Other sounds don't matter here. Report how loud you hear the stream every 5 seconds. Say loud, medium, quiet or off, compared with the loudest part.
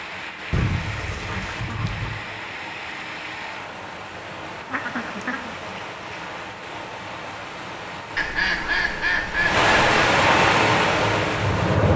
quiet, medium, loud.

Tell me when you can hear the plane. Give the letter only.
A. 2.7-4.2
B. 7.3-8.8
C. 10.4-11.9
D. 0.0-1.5
C.